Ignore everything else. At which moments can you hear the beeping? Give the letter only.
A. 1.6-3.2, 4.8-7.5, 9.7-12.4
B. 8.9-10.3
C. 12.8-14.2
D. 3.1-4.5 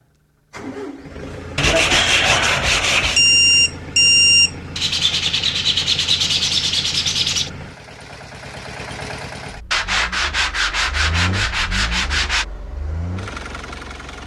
D.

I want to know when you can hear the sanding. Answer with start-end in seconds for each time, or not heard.
1.6-3.2, 4.8-7.5, 9.7-12.4.